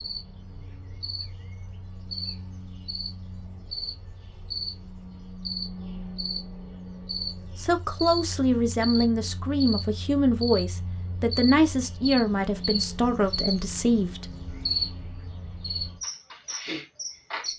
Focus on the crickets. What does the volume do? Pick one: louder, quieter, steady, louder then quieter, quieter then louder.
louder.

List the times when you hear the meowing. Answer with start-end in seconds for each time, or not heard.
not heard.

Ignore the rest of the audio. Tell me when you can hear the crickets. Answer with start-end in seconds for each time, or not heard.
0.0-17.5.